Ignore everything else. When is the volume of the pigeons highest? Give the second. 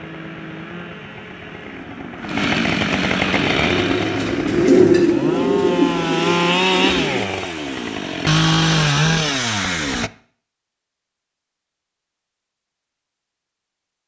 5 s.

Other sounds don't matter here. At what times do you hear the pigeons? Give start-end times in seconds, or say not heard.
3.3-7.2.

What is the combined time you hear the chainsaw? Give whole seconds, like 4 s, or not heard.
10 s.